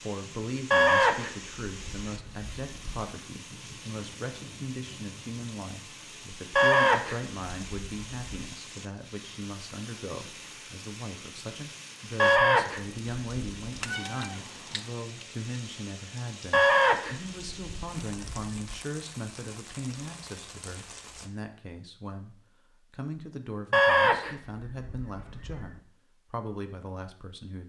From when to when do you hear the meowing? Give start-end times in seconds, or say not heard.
13.8-14.9.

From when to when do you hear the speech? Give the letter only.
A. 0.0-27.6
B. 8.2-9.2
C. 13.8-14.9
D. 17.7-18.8
A.